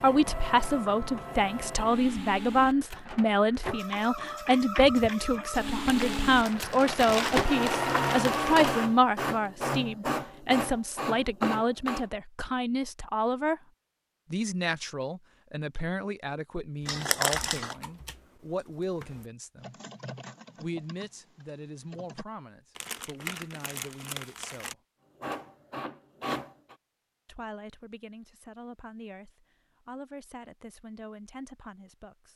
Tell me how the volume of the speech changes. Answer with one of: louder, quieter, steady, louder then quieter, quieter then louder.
quieter.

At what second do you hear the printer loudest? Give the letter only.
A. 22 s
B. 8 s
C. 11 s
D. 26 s
B.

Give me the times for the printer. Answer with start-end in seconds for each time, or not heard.
0.0-12.1, 25.2-26.8.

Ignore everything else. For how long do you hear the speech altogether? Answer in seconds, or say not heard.
28 s.